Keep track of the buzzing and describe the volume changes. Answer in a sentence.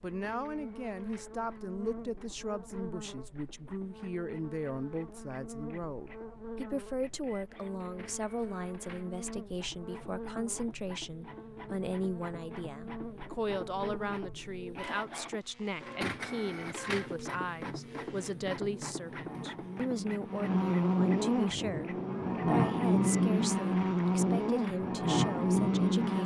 The volume of the buzzing goes up.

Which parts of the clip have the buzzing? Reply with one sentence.
The buzzing can be heard from 0.0 to 26.2 s.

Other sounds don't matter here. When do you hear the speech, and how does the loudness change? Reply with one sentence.
You can hear the speech from 0.0 to 26.2 s, at a steady volume.